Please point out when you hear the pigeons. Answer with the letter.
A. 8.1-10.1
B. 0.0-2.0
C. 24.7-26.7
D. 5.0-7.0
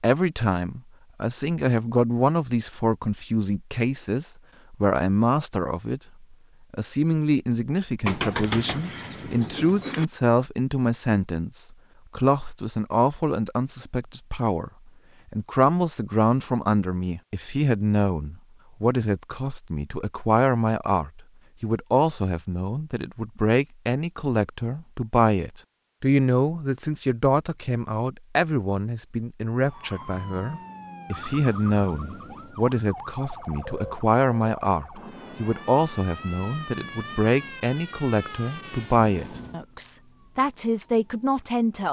A.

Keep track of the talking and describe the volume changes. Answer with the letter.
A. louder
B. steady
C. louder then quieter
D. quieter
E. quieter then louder
B.